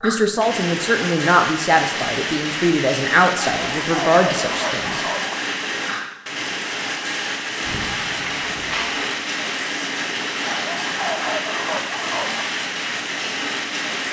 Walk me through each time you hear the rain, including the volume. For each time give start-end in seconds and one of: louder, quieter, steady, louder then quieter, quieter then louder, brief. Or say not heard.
0.0-14.0 steady.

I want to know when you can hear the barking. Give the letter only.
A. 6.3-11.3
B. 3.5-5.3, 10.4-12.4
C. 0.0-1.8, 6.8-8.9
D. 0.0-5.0
B.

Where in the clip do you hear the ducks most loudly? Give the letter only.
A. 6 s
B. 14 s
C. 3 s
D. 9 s
D.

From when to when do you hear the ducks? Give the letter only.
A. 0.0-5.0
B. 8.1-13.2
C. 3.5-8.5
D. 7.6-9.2
D.